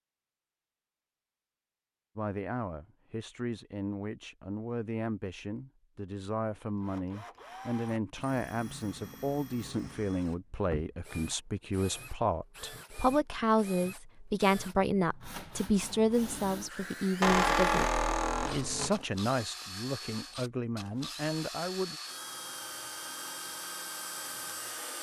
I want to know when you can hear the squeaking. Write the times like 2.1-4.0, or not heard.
17.2-19.0.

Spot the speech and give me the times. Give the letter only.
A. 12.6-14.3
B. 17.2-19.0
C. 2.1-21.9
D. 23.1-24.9
C.